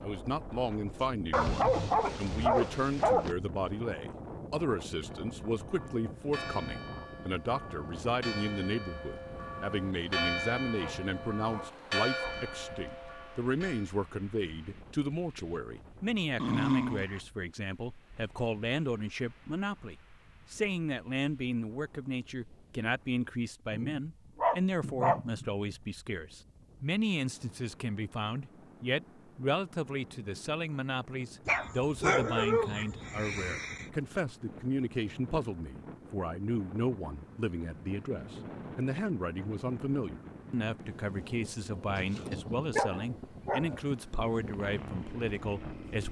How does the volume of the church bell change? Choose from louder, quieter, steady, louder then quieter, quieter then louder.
louder.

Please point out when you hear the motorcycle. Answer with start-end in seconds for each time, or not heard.
44.3-46.0.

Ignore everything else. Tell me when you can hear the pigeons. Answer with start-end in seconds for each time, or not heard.
not heard.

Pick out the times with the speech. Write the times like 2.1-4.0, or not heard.
0.0-46.0.